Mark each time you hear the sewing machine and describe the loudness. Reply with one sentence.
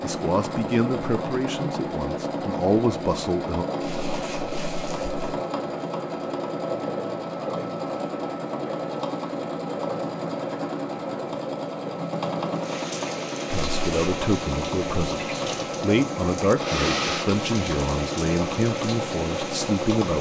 The sewing machine can be heard from 0.0 to 20.1 s, at a steady volume.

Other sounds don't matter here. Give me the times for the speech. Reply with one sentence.
The speech can be heard from 0.0 to 3.6 s and from 13.5 to 20.1 s.